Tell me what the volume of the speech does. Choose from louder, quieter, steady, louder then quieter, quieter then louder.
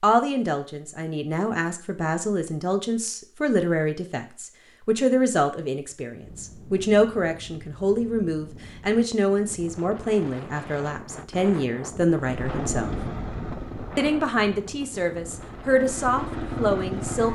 steady.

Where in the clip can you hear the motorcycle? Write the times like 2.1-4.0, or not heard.
12.2-17.2.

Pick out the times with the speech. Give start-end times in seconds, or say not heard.
0.0-12.9, 13.9-17.2.